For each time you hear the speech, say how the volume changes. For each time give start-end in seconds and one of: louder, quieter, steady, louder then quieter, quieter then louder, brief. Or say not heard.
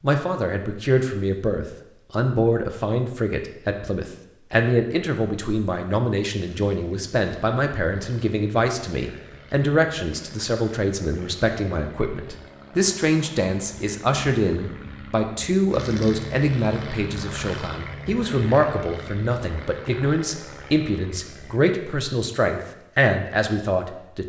0.0-24.2 steady.